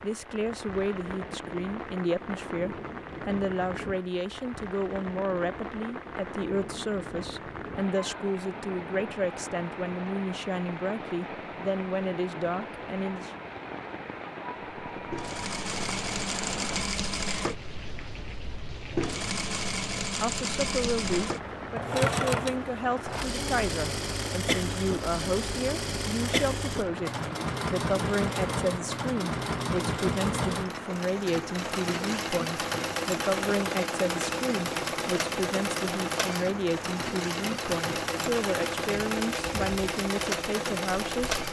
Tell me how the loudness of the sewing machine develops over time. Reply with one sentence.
The loudness of the sewing machine stays about the same.